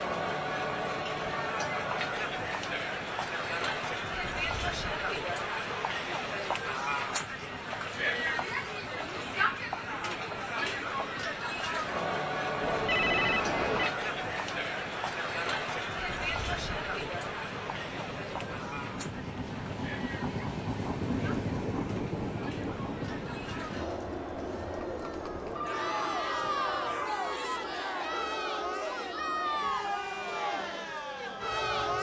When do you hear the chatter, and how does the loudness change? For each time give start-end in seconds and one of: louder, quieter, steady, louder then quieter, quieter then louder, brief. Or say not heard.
0.0-31.9 quieter then louder.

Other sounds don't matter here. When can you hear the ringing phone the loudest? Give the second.
13 s.